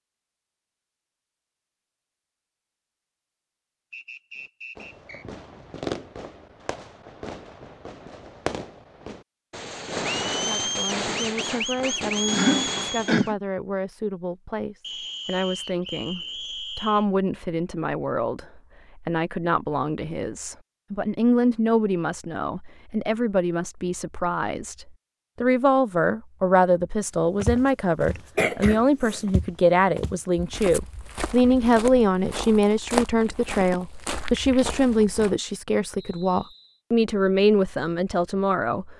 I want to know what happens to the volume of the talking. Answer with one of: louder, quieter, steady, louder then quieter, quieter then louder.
louder.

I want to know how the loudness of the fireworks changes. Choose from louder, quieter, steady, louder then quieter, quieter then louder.
quieter then louder.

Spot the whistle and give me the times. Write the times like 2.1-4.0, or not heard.
3.9-5.2, 14.8-17.1, 36.0-36.8.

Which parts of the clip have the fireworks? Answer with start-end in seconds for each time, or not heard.
4.8-13.3.